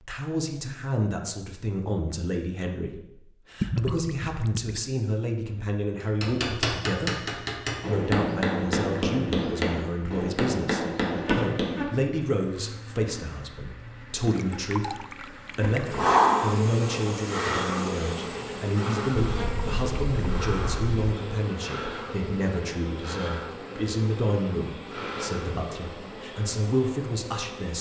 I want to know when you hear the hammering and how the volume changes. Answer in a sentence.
The hammering can be heard from 6.0 to 11.8 s, at a steady volume.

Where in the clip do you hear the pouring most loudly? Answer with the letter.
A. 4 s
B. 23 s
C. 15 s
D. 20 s
A.